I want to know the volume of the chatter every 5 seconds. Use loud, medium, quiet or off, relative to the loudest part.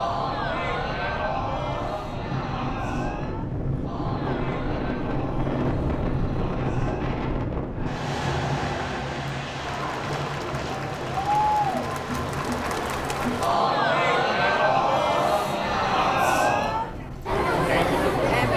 medium, quiet, loud, loud.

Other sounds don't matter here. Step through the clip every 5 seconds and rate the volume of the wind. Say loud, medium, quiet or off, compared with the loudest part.
loud, loud, medium, medium.